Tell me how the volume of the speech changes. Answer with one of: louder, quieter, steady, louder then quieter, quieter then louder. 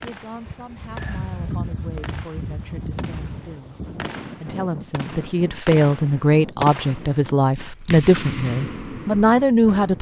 louder.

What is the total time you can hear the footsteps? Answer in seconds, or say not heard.
not heard.